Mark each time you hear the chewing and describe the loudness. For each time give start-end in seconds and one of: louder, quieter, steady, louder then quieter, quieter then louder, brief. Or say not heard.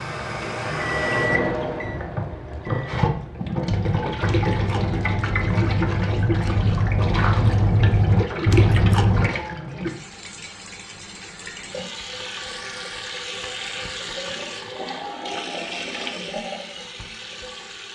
3.6-9.3 louder.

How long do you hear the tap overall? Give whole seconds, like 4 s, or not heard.
18 s.